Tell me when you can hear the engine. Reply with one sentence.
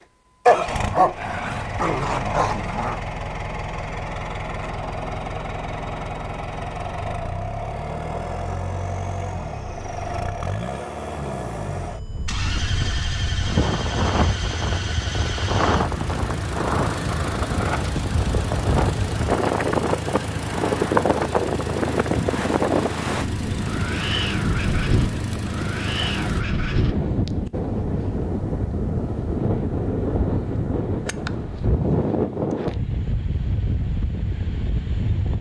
You can hear the engine from 0.0 to 26.4 s.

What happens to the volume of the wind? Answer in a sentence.
The loudness of the wind stays about the same.